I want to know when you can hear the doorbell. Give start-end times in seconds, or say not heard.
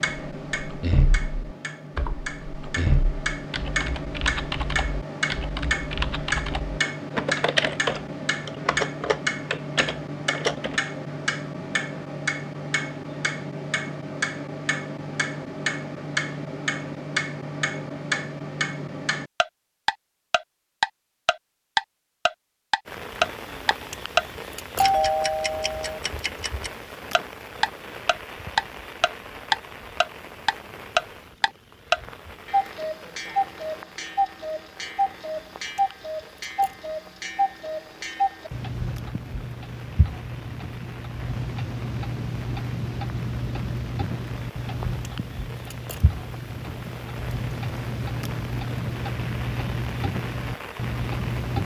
24.8-26.0.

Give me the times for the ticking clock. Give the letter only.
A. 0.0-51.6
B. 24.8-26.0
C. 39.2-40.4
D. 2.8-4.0
A.